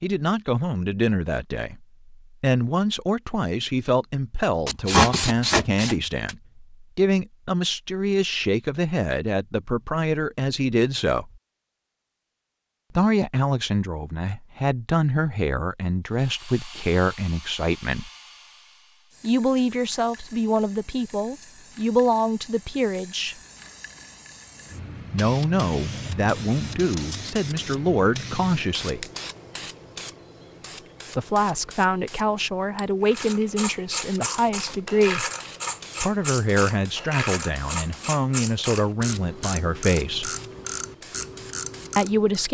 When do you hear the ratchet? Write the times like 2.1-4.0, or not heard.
33.0-42.4.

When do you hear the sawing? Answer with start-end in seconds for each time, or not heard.
4.7-6.3.